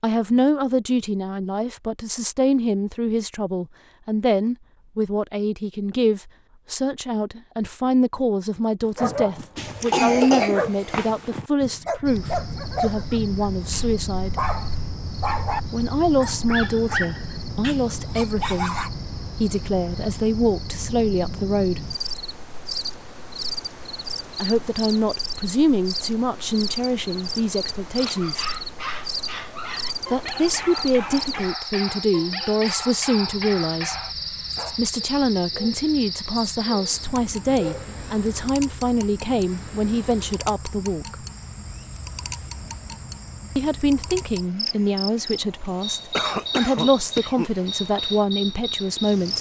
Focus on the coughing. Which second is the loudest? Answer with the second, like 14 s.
10 s.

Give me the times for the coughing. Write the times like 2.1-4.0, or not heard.
9.6-11.1, 46.1-47.5.